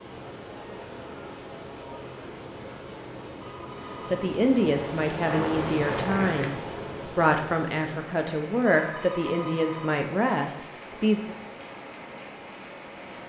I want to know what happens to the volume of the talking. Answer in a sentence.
The loudness of the talking stays about the same.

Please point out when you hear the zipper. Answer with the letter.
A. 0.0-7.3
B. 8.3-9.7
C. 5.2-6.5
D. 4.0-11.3
C.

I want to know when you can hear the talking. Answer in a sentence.
You can hear the talking from 4.0 to 11.3 s.